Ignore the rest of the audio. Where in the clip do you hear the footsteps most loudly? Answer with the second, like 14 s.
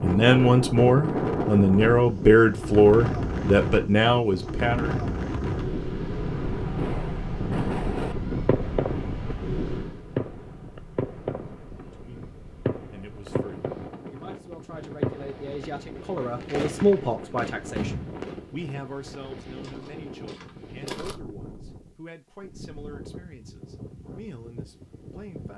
21 s.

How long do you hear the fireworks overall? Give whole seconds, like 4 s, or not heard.
12 s.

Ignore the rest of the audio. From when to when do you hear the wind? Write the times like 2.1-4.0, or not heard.
0.0-25.5.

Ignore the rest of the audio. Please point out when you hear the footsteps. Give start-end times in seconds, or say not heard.
19.4-21.2.